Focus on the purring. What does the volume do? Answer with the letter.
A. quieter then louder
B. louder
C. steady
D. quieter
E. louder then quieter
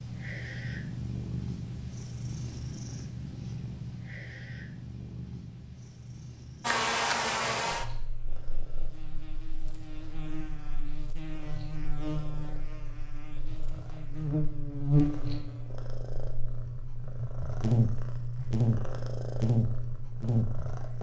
A.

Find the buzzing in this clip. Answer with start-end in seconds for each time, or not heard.
6.6-20.9.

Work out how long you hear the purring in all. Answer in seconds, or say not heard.
21 s.